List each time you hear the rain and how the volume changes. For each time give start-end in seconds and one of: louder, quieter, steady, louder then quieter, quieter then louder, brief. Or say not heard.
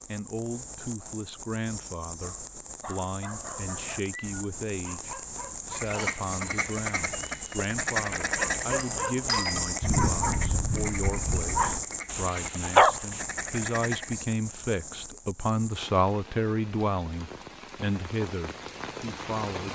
0.0-19.7 louder then quieter.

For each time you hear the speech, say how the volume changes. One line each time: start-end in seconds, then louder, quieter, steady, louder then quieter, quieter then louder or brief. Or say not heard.
0.1-19.7 louder.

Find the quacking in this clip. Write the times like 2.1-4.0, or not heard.
5.8-14.2.